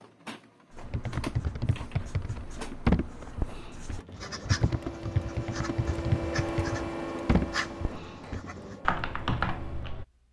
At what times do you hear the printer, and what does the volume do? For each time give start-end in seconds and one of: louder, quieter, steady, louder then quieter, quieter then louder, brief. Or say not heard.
0.0-10.2 louder then quieter.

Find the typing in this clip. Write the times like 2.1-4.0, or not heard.
0.8-10.1.